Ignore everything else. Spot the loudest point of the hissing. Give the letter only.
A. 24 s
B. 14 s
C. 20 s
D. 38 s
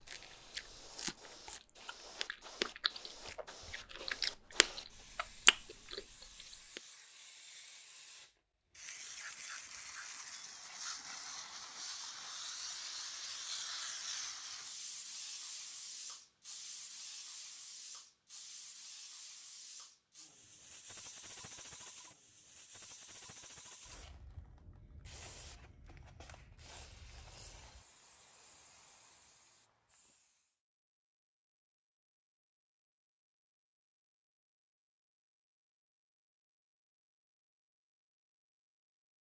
B.